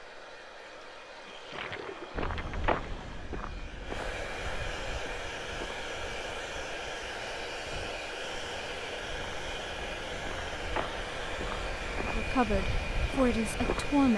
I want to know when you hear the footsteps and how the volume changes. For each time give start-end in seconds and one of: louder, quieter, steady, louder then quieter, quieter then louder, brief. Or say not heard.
2.1-14.1 quieter then louder.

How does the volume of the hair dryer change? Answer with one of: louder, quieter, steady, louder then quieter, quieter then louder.
louder.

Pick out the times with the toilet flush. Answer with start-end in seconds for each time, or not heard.
0.6-3.2.